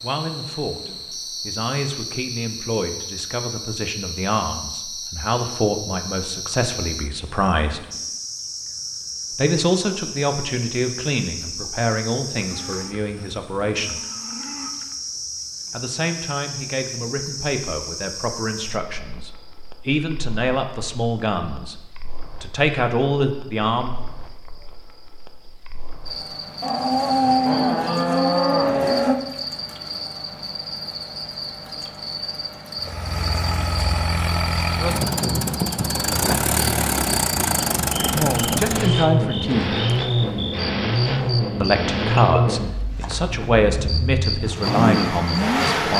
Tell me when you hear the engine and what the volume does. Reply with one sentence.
You can hear the engine from 32.8 to 45.9 s, at a steady volume.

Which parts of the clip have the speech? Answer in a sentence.
The speech can be heard from 0.0 to 7.8 s, from 9.3 to 14.0 s, from 15.7 to 21.8 s, from 22.4 to 23.9 s, from 38.0 to 39.7 s and from 41.6 to 45.9 s.